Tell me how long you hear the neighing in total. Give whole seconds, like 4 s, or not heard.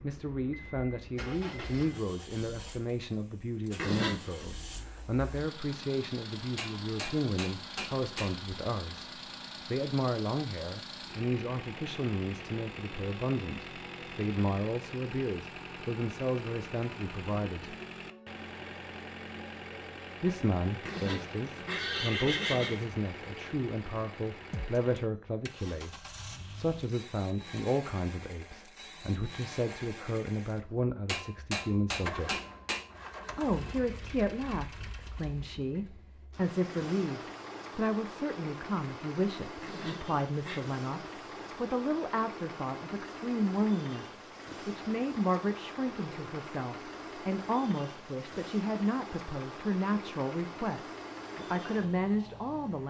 4 s.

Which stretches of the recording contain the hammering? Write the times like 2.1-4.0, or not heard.
6.5-8.3, 31.1-32.9.